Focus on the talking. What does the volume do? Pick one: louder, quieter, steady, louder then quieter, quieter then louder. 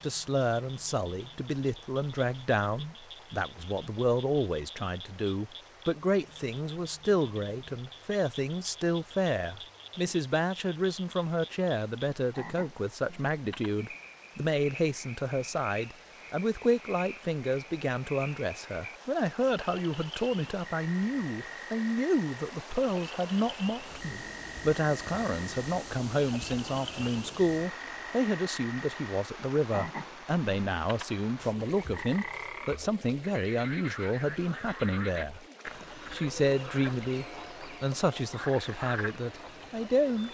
steady.